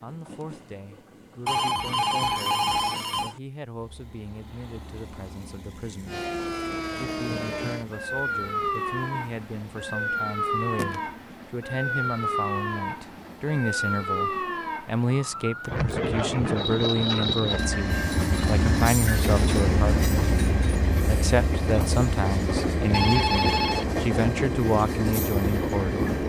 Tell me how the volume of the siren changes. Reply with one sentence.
The loudness of the siren stays about the same.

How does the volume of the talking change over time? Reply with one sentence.
The volume of the talking goes up.